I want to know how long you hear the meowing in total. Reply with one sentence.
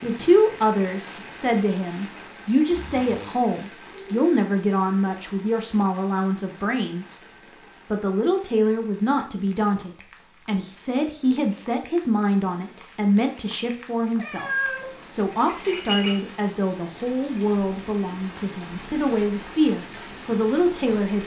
The meowing can be heard for 2 seconds in total.